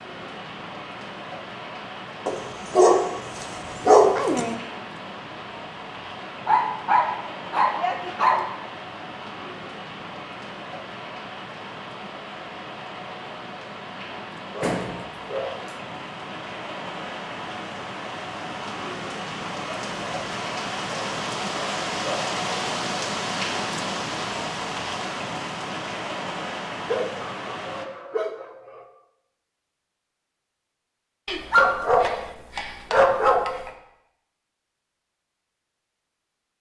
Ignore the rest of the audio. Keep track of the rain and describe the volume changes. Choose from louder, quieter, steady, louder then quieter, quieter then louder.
louder.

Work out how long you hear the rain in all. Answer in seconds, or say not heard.
28 s.